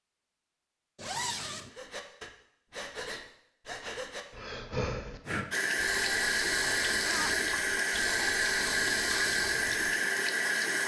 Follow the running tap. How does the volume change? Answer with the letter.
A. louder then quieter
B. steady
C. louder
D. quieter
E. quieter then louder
B.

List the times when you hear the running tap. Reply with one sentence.
You can hear the running tap from 5.5 to 10.8 s.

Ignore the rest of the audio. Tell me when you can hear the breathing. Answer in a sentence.
You can hear the breathing from 1.6 to 9.7 s.